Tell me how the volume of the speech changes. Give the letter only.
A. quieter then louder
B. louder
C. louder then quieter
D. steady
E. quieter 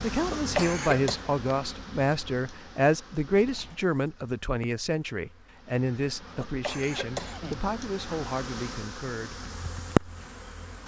E.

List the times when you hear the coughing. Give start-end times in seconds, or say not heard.
0.1-1.2, 6.2-7.7.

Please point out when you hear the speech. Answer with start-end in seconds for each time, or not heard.
0.0-9.4.